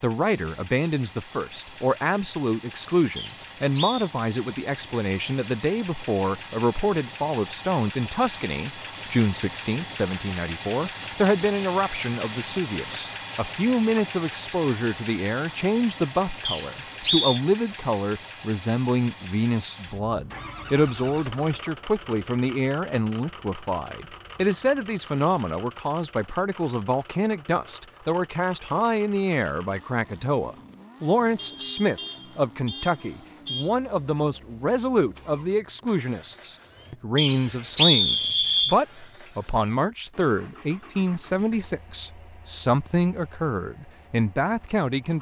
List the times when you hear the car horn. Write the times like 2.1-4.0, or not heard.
31.4-33.7.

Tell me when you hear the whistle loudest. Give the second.
38 s.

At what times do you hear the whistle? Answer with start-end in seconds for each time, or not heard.
3.1-4.0, 16.4-17.4, 37.1-38.8.